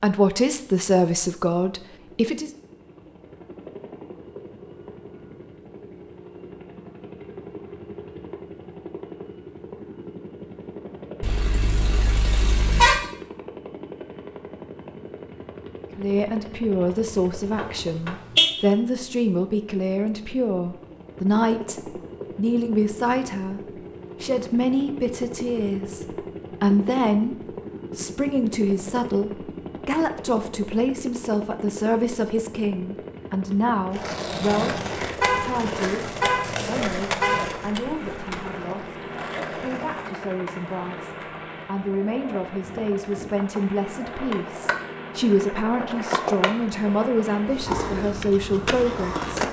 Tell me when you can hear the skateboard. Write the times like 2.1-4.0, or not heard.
33.9-49.4.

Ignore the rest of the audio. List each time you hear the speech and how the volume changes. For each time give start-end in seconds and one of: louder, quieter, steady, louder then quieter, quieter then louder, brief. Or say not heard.
0.0-2.5 brief
15.9-27.4 steady
27.9-49.2 quieter then louder.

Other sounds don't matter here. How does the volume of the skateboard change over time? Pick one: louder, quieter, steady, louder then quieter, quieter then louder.
quieter then louder.